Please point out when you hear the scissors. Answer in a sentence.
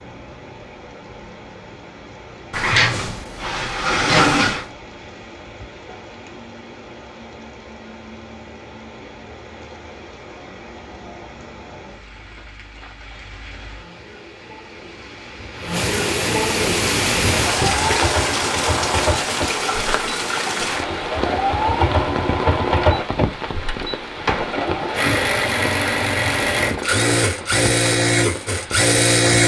The scissors can't be heard in this clip.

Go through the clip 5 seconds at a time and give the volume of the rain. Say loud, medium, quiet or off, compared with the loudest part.
quiet, quiet, quiet, loud, medium, medium.